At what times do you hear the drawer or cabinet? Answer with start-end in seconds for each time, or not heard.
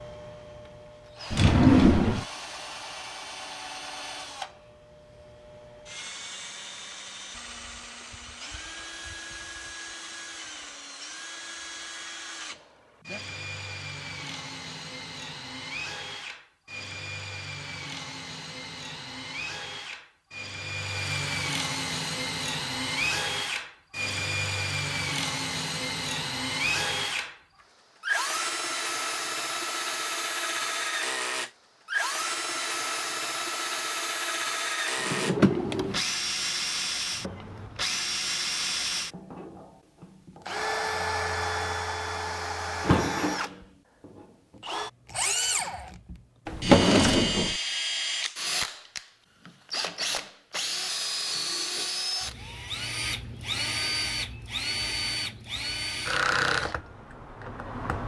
1.3-2.2, 35.0-36.0, 46.5-47.5.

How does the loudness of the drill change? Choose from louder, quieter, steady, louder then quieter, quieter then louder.
louder.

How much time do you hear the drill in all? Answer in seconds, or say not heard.
58 s.